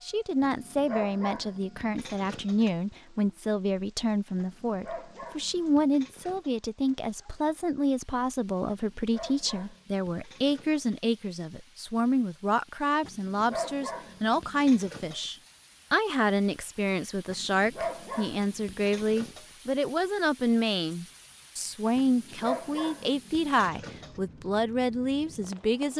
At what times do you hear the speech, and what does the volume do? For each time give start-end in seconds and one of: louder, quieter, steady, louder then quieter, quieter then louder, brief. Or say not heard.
0.0-25.9 steady.